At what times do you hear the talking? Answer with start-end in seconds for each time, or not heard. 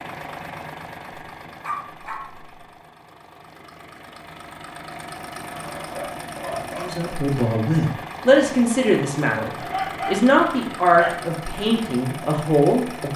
6.8-13.1.